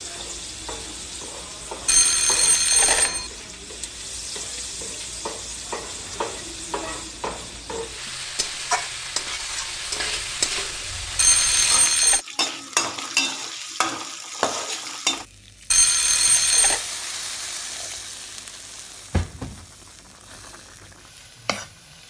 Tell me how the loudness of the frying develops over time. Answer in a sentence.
The volume of the frying goes up, then down.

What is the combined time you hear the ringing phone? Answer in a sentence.
You can hear the ringing phone for 4 seconds altogether.